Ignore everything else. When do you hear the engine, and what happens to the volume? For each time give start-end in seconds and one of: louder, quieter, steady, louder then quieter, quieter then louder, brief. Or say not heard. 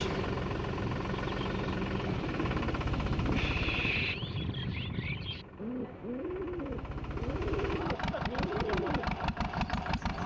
0.0-10.2 quieter then louder.